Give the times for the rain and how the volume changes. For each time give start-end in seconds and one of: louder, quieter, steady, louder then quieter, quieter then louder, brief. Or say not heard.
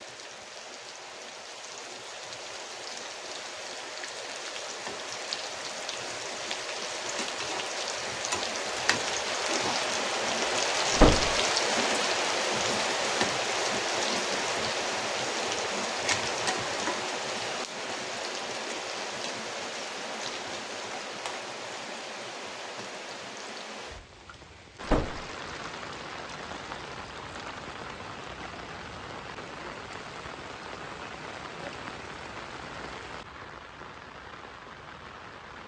0.0-35.6 louder then quieter.